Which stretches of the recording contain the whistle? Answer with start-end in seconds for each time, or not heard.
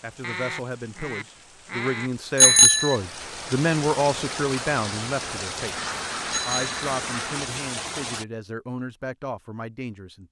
not heard.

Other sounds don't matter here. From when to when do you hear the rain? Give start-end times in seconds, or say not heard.
0.0-8.2.